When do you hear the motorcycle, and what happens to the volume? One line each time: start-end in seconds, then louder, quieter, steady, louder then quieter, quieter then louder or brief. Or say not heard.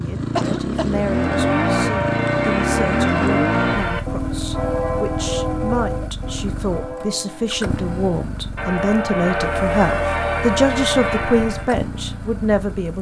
0.0-12.9 quieter.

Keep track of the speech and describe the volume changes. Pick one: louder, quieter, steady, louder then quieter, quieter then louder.
louder.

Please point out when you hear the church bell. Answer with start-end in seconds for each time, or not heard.
0.9-11.7.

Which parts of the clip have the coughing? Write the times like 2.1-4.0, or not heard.
0.3-1.1.